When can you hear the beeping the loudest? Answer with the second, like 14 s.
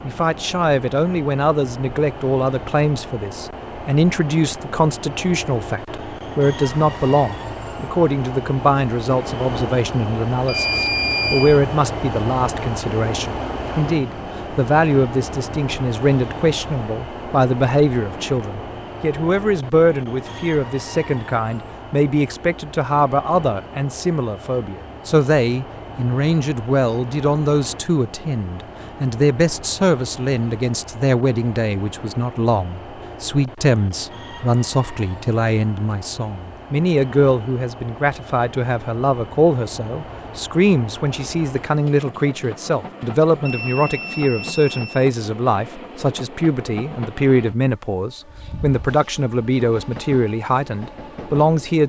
11 s.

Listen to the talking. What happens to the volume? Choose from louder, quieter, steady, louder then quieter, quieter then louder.
steady.